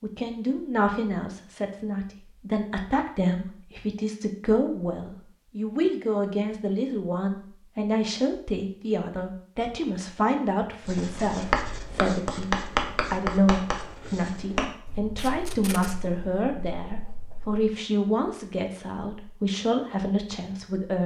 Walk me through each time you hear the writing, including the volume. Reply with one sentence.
The writing can be heard from 10.8 to 17.6 s, getting quieter.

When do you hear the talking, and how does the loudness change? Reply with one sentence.
You can hear the talking from 0.0 to 21.0 s, at a steady volume.